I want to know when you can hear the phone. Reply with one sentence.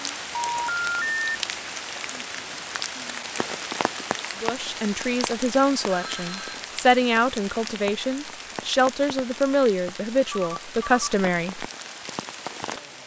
The phone can be heard from 0.3 to 1.4 s, from 5.9 to 6.6 s and from 10.2 to 11.1 s.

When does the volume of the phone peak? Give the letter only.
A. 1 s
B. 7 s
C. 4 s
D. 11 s
A.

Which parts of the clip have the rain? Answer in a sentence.
The rain can be heard from 0.0 to 13.0 s.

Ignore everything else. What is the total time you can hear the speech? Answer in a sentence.
You can hear the speech for 7 seconds altogether.